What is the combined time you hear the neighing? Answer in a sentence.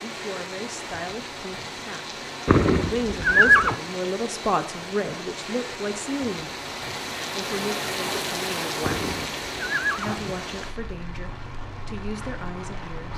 You can hear the neighing for 3 seconds altogether.